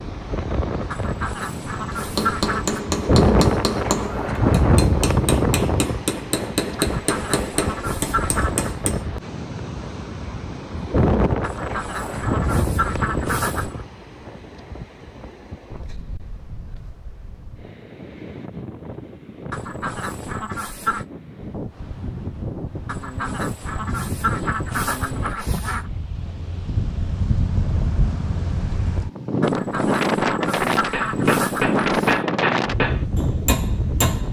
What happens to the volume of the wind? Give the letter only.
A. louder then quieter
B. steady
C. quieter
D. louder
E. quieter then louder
E.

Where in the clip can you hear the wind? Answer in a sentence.
You can hear the wind from 0.0 to 34.2 s.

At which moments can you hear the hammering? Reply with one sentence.
You can hear the hammering from 1.9 to 9.1 s and from 30.9 to 34.2 s.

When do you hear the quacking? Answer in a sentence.
You can hear the quacking from 0.9 to 2.8 s, from 6.8 to 8.7 s, from 11.4 to 13.8 s, from 19.5 to 21.1 s, from 22.9 to 25.9 s and from 29.4 to 32.2 s.